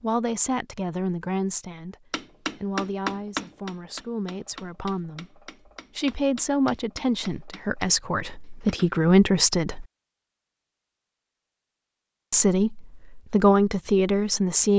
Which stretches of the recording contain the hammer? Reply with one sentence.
You can hear the hammer from 2.1 to 8.9 s.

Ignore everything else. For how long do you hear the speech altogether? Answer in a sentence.
The speech can be heard for 12 seconds in total.